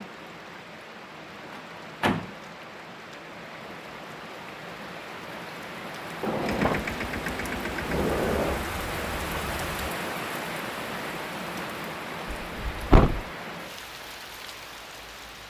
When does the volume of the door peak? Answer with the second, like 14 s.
13 s.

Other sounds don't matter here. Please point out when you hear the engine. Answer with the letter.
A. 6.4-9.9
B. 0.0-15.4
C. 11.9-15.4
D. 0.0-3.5
A.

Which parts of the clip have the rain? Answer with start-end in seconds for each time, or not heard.
0.0-15.4.